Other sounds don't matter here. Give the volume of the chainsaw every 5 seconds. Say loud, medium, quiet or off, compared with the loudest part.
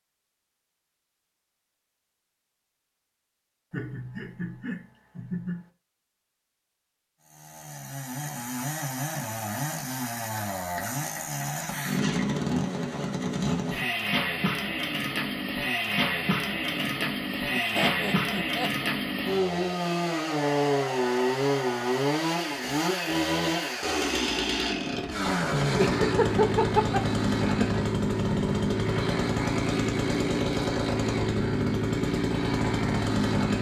off, medium, loud, loud, loud, loud, loud.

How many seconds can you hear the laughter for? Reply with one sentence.
The laughter can be heard for 6 seconds in total.